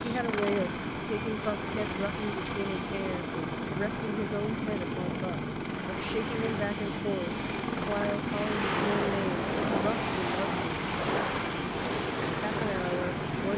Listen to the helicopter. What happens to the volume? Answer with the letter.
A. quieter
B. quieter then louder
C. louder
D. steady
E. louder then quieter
D.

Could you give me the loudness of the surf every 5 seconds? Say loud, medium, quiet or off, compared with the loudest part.
off, loud, loud.